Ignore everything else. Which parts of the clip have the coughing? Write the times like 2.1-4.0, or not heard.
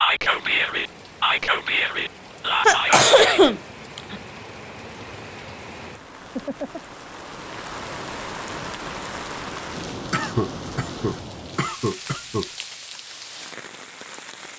2.6-4.2, 10.1-12.5.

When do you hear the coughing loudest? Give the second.
3 s.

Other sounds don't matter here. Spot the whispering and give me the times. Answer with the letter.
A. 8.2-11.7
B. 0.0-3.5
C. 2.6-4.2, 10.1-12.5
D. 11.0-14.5
B.